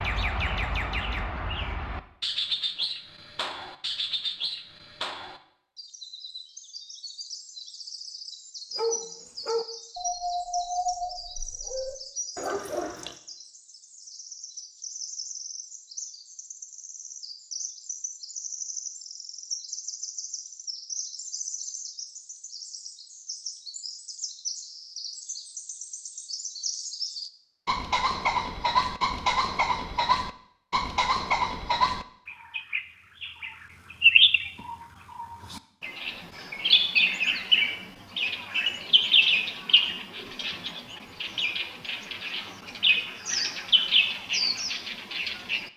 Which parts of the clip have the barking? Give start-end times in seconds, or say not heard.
8.8-13.2.